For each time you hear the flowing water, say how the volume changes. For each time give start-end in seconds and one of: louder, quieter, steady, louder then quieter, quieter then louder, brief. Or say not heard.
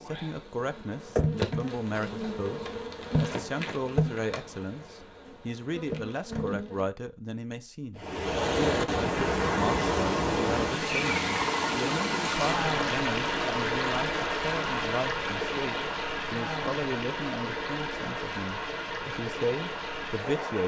8.0-20.6 quieter.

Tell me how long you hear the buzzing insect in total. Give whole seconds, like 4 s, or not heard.
7 s.